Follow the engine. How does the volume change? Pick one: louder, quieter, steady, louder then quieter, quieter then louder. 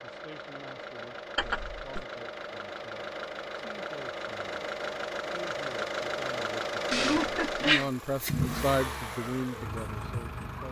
louder.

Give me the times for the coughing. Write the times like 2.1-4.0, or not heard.
1.4-2.0, 6.9-7.9.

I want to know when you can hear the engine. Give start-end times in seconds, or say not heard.
0.0-10.6.